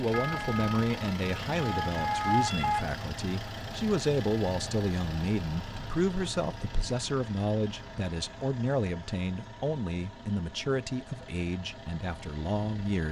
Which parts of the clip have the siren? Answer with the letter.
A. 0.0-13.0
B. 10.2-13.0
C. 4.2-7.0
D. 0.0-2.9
D.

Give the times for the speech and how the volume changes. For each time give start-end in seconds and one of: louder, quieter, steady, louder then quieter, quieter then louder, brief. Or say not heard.
0.0-13.0 steady.